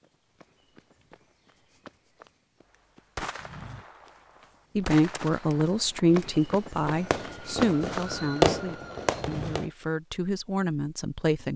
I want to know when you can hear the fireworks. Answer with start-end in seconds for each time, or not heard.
3.1-9.7.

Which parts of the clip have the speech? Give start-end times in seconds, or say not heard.
4.8-11.5.